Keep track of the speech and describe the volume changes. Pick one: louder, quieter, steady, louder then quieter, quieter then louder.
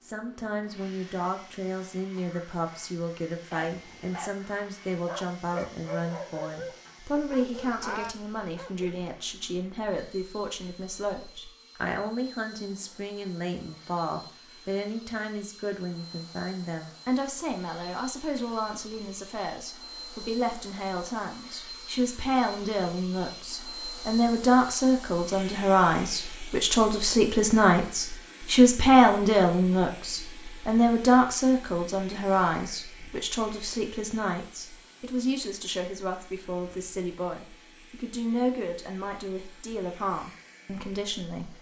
louder then quieter.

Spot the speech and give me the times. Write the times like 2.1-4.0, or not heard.
0.0-41.5.